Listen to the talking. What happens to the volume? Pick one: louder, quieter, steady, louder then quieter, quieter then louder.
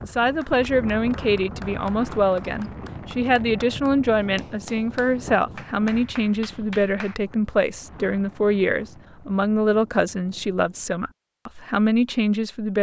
steady.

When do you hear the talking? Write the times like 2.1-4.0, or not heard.
0.0-12.7.